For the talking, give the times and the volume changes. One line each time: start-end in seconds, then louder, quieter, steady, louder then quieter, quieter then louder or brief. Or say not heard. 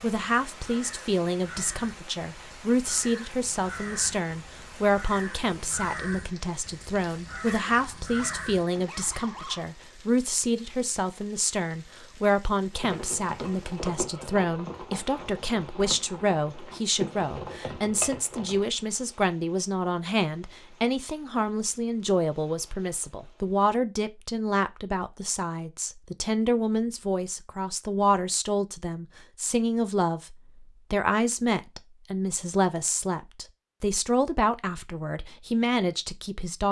0.0-36.6 steady.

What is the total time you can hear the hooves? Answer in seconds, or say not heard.
6 s.